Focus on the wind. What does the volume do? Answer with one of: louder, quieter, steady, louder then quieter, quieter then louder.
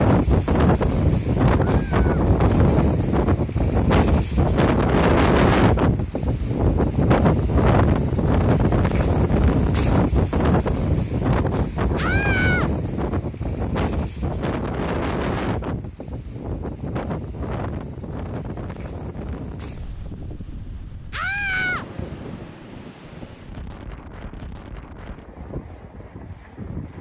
quieter.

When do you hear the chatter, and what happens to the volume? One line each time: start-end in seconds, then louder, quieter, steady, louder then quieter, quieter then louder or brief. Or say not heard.
not heard.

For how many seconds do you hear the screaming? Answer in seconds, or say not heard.
2 s.